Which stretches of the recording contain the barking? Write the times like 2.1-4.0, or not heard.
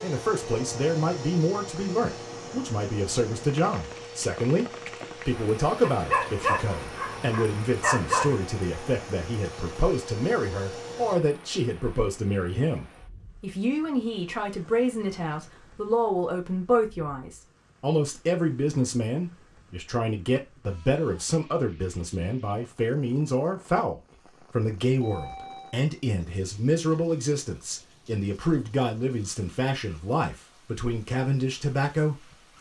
5.8-8.4.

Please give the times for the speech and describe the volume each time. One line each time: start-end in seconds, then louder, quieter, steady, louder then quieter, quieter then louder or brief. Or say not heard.
0.0-32.4 steady.